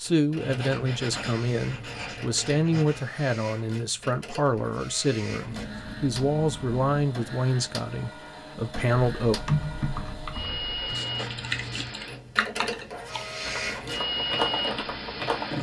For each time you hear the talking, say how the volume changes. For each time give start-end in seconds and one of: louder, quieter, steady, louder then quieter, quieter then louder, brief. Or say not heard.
0.0-9.4 steady.